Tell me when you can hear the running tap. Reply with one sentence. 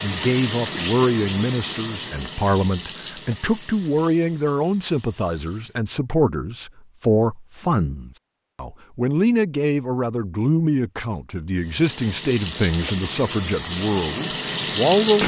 You can hear the running tap from 0.0 to 5.8 s and from 11.6 to 15.2 s.